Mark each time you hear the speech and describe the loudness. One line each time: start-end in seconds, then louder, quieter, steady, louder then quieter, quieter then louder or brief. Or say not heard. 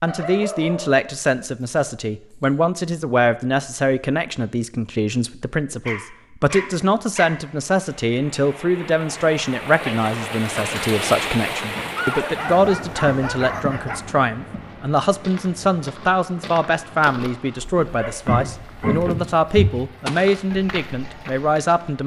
0.0-22.0 steady.